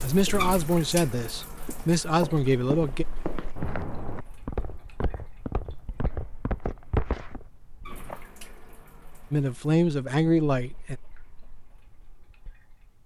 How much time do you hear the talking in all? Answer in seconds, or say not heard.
5 s.